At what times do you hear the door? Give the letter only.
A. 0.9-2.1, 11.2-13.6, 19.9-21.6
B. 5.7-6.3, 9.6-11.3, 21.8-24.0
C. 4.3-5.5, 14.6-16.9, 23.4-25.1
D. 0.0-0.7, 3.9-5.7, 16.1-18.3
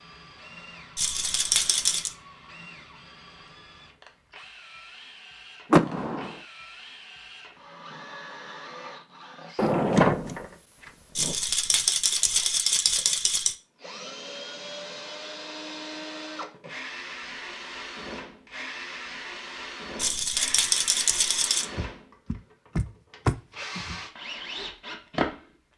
B.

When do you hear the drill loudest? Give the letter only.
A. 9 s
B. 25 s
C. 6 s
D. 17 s
B.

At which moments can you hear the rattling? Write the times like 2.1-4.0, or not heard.
0.9-2.1, 11.2-13.6, 19.9-21.6.